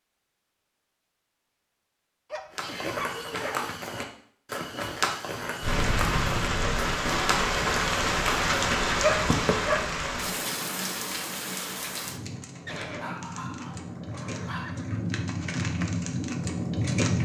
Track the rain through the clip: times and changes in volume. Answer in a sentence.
The rain can be heard from 5.6 to 17.1 s, getting quieter then louder.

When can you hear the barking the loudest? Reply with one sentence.
The volume of the barking peaks at 9 seconds.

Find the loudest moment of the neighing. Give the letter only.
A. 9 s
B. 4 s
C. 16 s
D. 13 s
D.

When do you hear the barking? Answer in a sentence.
The barking can be heard from 2.3 to 3.8 s, from 8.3 to 9.8 s and from 12.9 to 14.8 s.